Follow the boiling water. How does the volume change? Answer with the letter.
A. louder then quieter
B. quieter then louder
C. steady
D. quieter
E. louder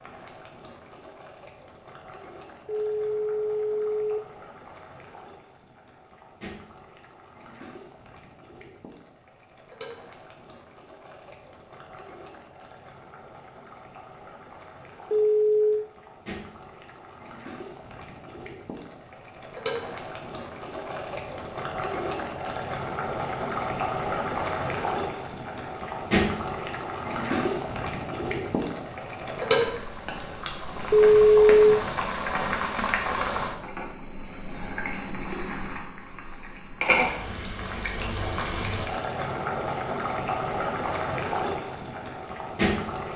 E.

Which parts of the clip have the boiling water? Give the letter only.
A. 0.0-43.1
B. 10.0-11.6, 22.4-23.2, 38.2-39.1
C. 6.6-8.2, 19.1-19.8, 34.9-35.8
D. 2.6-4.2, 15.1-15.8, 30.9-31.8
A.